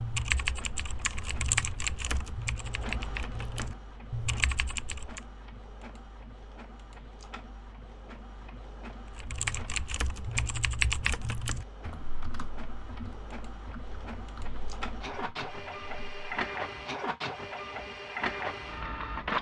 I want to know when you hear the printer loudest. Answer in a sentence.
The volume of the printer peaks at 19 seconds.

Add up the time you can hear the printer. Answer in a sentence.
The printer can be heard for 19 seconds in total.